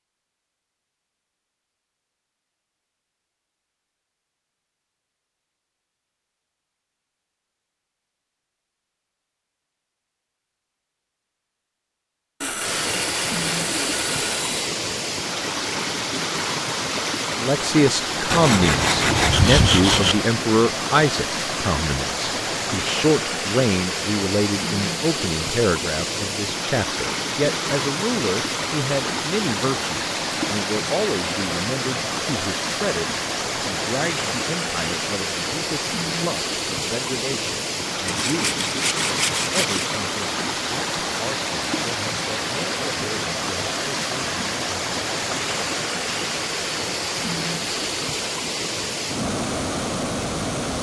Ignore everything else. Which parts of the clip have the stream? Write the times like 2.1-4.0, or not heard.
12.6-50.7.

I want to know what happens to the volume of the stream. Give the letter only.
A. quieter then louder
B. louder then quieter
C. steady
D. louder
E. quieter
C.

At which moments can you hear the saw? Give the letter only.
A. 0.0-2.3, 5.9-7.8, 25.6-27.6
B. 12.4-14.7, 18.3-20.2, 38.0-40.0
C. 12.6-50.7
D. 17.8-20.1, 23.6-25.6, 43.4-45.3
B.